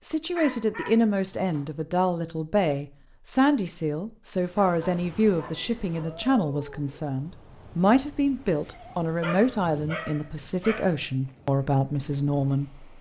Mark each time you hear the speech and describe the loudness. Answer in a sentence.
You can hear the speech from 0.0 to 12.9 s, at a steady volume.